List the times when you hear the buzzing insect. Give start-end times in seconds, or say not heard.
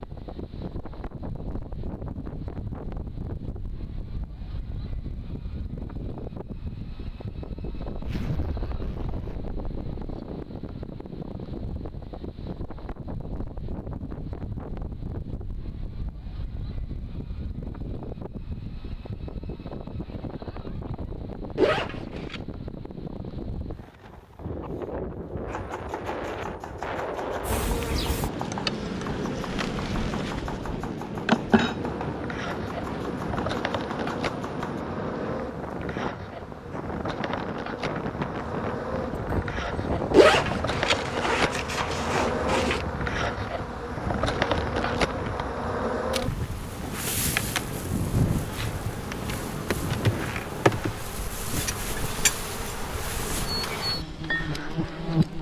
27.4-55.3.